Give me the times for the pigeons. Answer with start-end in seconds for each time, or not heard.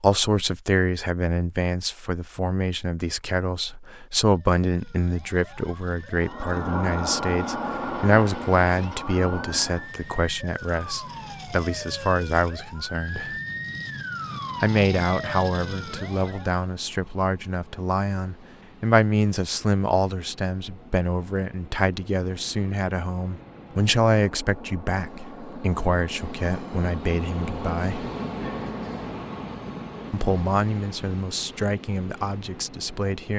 not heard.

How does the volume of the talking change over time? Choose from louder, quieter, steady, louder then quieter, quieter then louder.
steady.